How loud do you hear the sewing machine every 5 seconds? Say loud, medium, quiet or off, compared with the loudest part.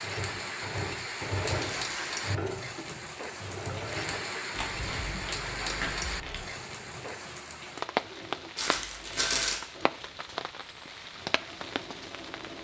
loud, medium, medium.